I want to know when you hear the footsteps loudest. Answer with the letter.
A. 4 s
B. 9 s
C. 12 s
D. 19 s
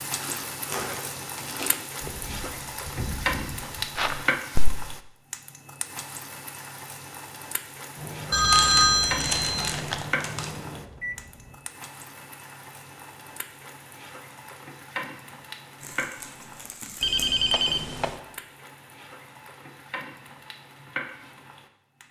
A.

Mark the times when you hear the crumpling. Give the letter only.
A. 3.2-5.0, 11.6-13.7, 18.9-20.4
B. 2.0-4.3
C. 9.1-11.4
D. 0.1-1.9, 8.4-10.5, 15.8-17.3
D.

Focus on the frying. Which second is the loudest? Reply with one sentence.
The volume of the frying peaks at 4 seconds.